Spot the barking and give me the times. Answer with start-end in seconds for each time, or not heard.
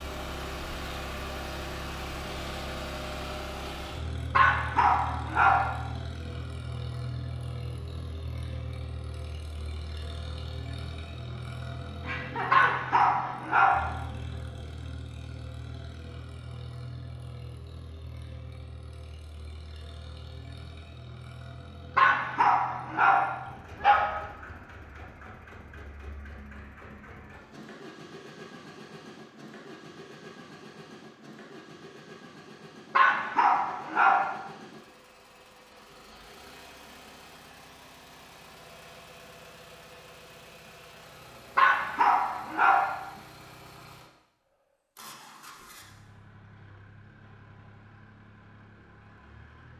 4.3-5.8, 12.5-13.9, 21.9-24.2, 33.0-34.4, 41.5-43.0.